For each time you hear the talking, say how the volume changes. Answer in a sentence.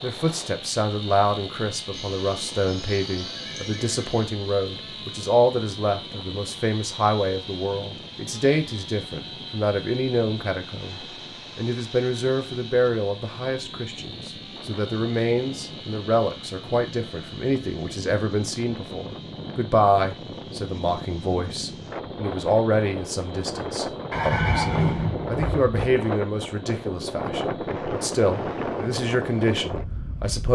You can hear the talking from 0.0 to 30.5 s, at a steady volume.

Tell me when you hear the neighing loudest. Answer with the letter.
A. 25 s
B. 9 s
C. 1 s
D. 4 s
A.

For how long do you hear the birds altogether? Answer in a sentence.
You can't hear the birds here.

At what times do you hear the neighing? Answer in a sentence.
The neighing can be heard from 1.9 to 4.3 s and from 24.1 to 25.9 s.